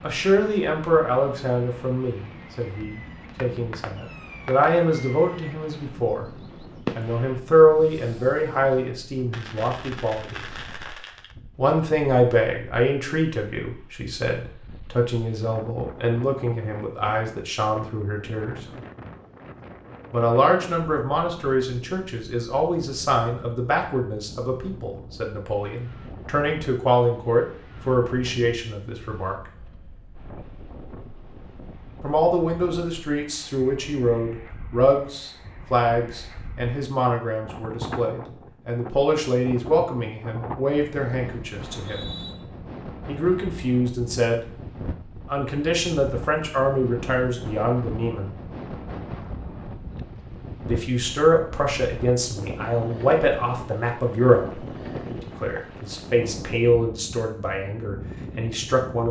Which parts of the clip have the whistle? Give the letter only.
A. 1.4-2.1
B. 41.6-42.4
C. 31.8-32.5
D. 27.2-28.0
B.